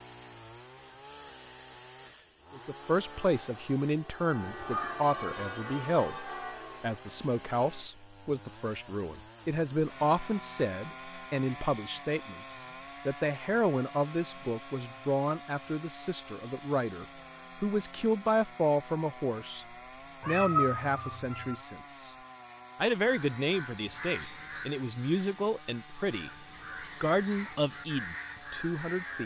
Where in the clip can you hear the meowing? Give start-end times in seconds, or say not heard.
4.6-5.0, 20.2-21.6.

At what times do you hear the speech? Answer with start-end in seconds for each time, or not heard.
2.5-22.1, 22.8-29.2.